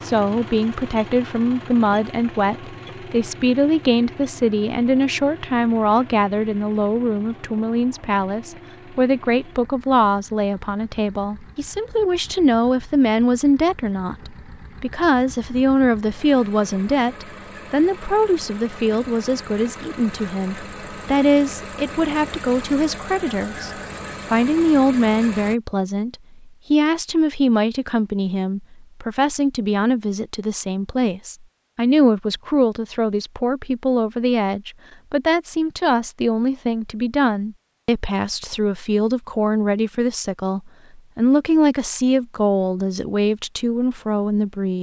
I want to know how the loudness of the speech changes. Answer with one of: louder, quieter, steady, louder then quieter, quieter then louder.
steady.